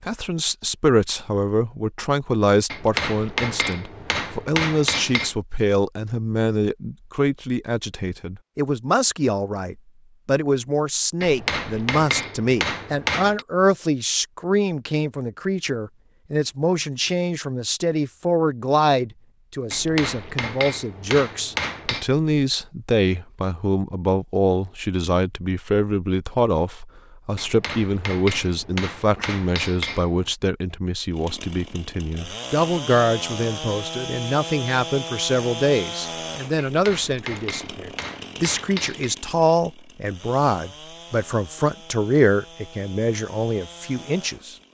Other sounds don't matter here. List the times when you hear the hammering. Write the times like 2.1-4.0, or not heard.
2.7-5.3, 11.2-13.4, 19.7-22.1, 27.4-30.3, 36.6-39.1.